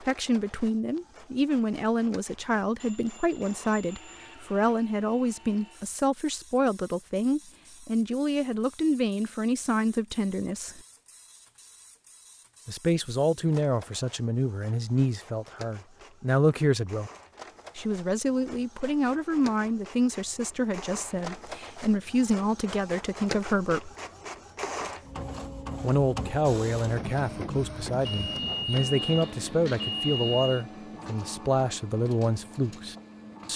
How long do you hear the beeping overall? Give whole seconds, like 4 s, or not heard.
4 s.